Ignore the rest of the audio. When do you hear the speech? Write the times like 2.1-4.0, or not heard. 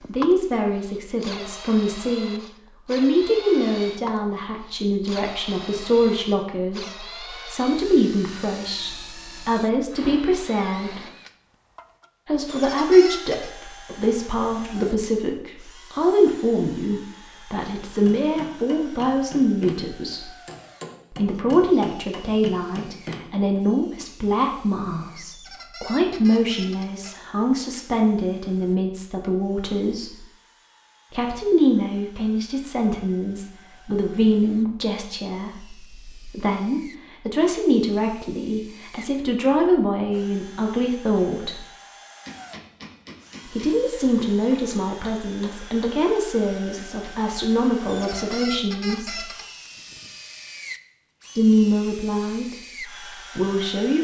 0.1-11.0, 12.2-20.4, 21.1-30.2, 31.1-41.6, 43.5-49.2, 51.4-53.9.